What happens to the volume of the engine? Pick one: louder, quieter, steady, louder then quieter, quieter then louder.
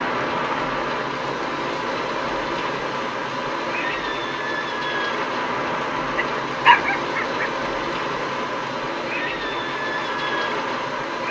steady.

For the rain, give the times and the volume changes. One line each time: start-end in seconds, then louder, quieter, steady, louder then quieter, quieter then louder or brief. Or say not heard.
0.0-11.2 steady.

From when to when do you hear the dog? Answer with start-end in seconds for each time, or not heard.
6.2-7.5.